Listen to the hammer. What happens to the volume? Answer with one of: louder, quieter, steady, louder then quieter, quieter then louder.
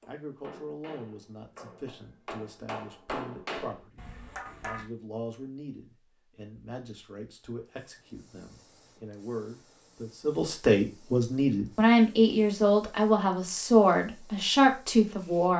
louder then quieter.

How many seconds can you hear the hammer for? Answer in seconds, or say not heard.
5 s.